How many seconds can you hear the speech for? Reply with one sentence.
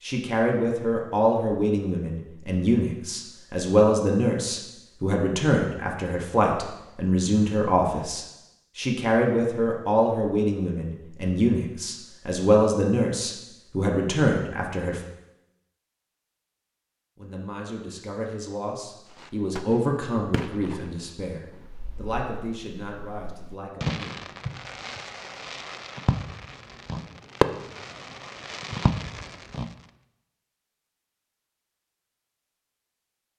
The speech can be heard for 22 seconds in total.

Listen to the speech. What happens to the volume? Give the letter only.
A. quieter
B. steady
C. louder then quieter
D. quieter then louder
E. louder
A.